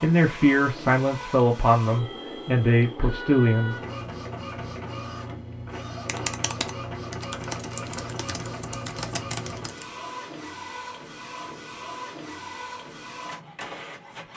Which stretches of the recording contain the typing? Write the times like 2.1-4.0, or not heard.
6.0-9.8.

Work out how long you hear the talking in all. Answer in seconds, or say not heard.
4 s.